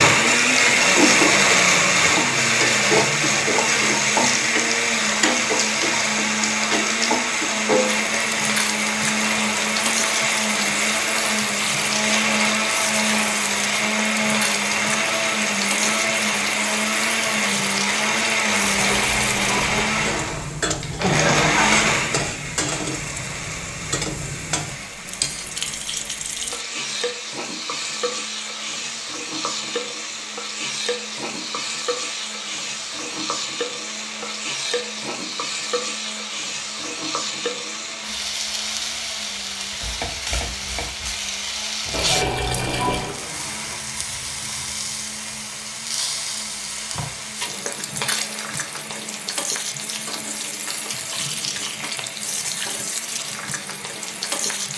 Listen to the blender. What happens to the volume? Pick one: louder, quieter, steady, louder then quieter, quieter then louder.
quieter.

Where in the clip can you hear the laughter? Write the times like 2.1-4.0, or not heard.
20.9-21.6.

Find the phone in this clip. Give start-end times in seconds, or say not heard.
not heard.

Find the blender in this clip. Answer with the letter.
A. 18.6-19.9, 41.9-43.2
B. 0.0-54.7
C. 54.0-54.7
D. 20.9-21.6
B.